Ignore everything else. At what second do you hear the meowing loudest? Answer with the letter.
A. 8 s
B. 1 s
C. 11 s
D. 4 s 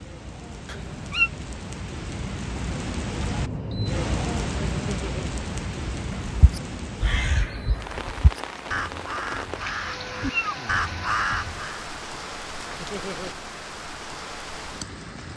B.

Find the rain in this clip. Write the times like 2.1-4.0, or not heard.
0.0-15.3.